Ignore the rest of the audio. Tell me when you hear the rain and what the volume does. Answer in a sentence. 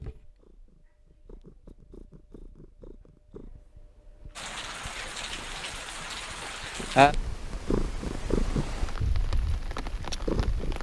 The rain can be heard from 4.3 to 10.7 s, getting louder then quieter.